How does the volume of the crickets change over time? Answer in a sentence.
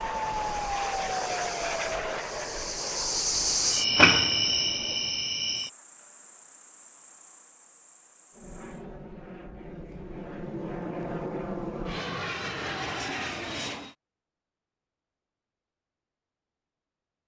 The loudness of the crickets goes up, then down.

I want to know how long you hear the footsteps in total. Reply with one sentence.
The footsteps can't be heard in this clip.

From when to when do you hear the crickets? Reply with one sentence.
The crickets can be heard from 0.0 to 8.8 s.